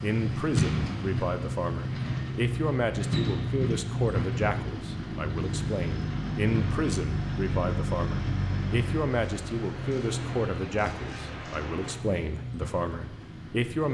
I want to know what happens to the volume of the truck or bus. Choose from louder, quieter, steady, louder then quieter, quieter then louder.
quieter.